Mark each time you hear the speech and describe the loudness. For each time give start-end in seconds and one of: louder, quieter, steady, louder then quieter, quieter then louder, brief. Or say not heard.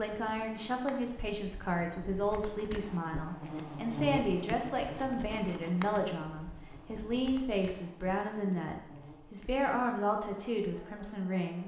0.0-11.6 steady.